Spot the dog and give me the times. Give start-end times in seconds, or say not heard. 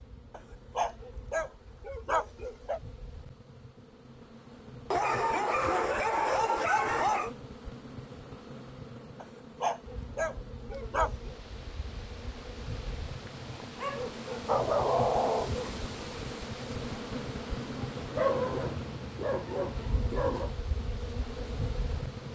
0.3-2.8, 4.9-7.3, 9.2-11.3, 13.8-15.8, 18.1-20.5.